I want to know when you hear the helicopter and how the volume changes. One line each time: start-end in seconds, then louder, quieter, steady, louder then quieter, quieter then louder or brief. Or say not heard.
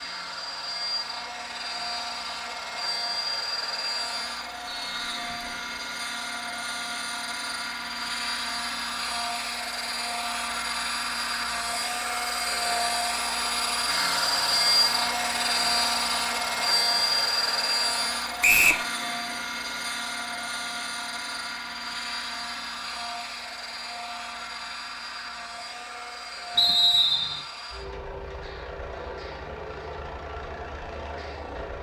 0.0-31.7 louder then quieter.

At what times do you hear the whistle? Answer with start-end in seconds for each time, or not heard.
4.7-5.8, 18.4-18.9, 26.6-27.4.